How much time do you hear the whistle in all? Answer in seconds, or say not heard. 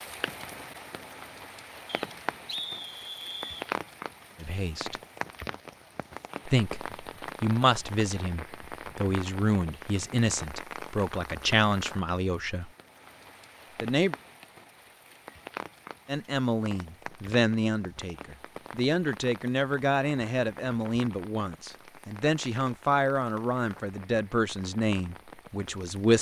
2 s.